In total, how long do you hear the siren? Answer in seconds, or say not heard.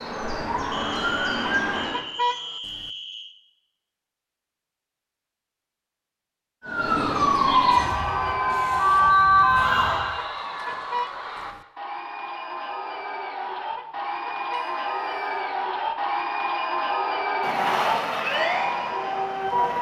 7 s.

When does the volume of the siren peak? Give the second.
9 s.